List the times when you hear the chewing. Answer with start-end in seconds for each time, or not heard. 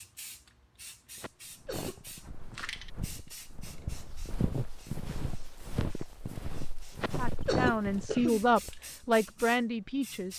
not heard.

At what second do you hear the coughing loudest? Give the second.
8 s.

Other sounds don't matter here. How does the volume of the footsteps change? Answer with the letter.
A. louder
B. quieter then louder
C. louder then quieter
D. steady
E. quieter
A.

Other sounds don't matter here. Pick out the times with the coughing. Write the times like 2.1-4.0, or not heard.
1.1-2.0, 7.0-8.4.